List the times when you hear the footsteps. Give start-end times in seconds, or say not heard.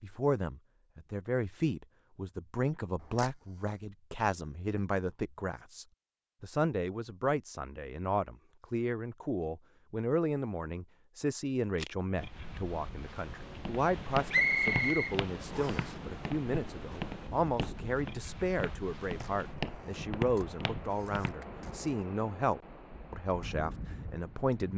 13.6-21.4.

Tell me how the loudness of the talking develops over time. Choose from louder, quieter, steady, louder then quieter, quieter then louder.
steady.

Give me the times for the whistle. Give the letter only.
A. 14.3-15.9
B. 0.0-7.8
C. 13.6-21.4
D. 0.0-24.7
A.